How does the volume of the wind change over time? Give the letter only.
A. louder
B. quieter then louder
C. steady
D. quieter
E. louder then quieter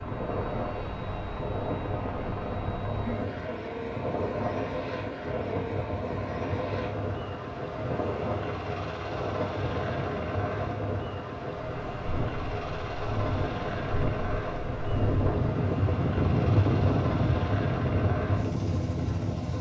A.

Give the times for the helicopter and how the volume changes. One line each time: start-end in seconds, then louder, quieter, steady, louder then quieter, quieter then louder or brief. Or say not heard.
0.0-19.5 steady.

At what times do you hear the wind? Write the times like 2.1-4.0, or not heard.
0.0-19.5.